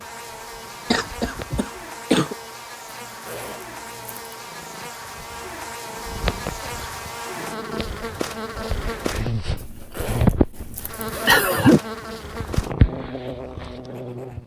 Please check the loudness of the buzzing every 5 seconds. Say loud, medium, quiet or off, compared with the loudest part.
medium, loud, loud.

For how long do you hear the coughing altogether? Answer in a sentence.
You can hear the coughing for 3 seconds altogether.